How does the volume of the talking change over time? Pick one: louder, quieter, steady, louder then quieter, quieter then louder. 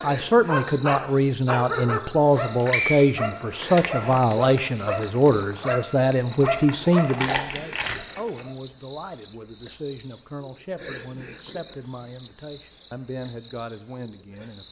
quieter.